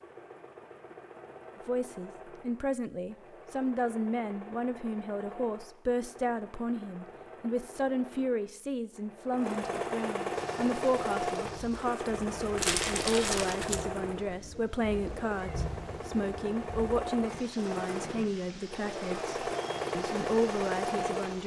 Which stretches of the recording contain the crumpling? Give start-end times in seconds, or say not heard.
12.6-13.8.